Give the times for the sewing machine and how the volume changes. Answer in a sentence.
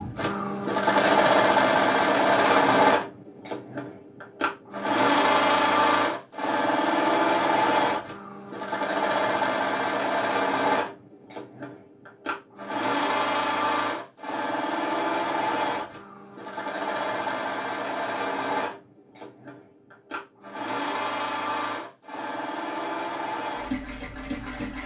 You can hear the sewing machine from 0.0 to 24.8 s, getting quieter.